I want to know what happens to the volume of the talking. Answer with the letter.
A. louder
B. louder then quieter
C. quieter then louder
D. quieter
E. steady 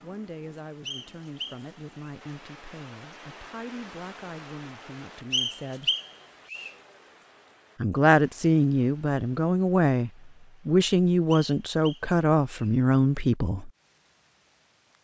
A.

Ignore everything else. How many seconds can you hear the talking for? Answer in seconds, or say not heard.
12 s.